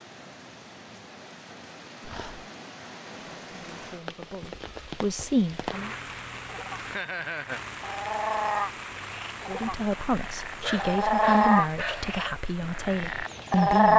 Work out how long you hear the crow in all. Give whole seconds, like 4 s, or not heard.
not heard.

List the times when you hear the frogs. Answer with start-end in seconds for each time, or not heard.
5.6-13.9.